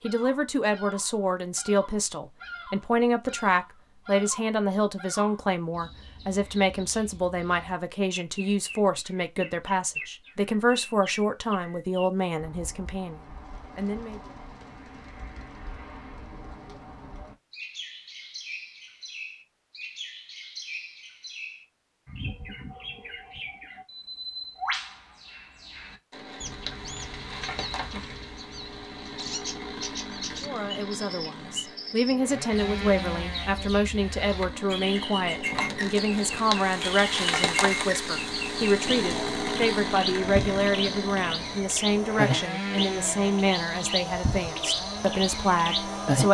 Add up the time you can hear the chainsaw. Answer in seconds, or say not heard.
20 s.